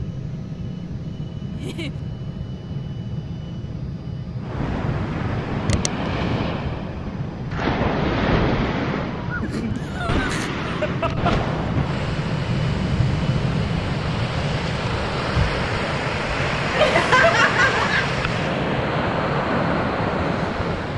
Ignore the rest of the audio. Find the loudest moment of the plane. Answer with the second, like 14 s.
13 s.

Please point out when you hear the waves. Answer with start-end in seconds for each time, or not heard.
4.4-20.9.